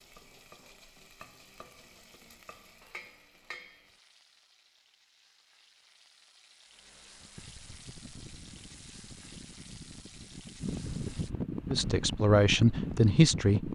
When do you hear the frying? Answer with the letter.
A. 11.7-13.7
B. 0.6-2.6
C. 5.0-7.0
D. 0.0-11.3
D.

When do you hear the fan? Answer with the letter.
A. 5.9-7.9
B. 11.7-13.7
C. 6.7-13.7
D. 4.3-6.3
C.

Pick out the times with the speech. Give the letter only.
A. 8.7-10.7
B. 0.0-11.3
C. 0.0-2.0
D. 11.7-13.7
D.